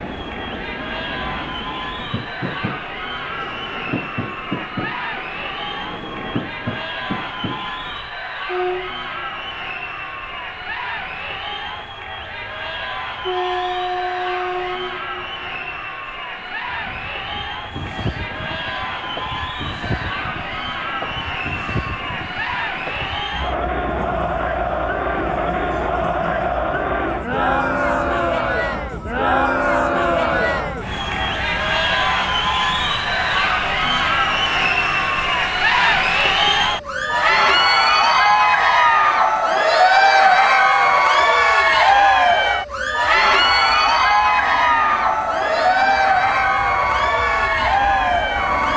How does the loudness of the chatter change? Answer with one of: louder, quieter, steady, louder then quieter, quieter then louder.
louder.